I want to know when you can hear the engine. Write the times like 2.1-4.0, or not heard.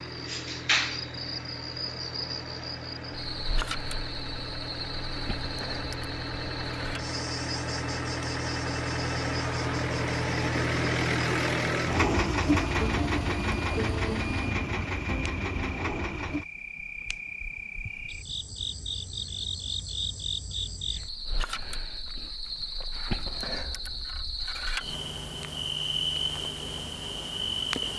0.0-16.4.